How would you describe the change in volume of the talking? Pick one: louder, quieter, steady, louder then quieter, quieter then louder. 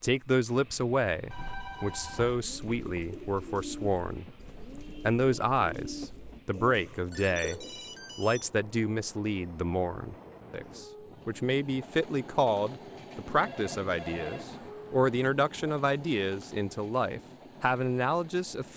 steady.